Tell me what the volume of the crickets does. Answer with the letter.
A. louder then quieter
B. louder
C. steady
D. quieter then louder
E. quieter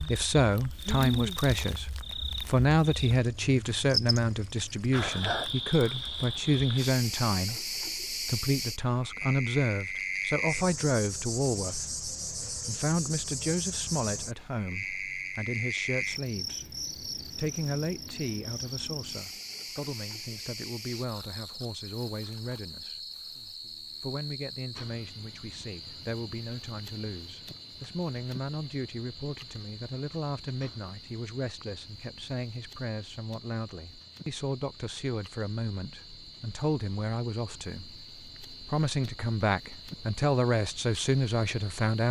E.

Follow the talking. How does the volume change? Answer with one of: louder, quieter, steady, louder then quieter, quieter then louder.
quieter then louder.